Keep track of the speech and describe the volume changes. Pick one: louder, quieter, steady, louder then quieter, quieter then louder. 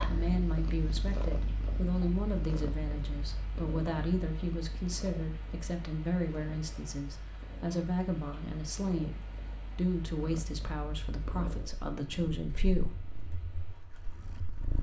steady.